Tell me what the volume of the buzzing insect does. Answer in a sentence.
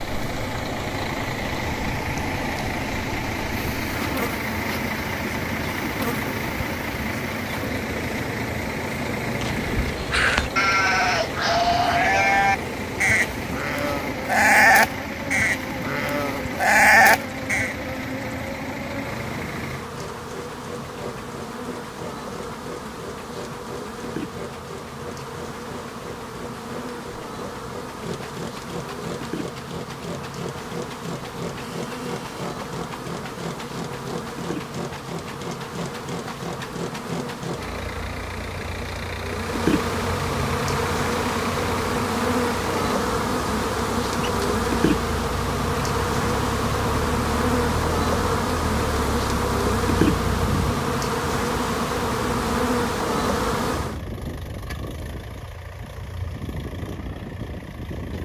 The loudness of the buzzing insect goes up.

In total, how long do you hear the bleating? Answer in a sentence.
The bleating can be heard for 8 seconds in total.